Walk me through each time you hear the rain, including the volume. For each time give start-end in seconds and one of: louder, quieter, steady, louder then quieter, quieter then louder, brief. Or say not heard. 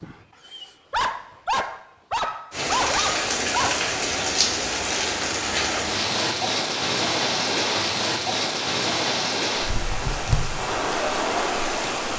2.5-12.1 steady.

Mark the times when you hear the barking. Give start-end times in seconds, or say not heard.
0.0-3.9.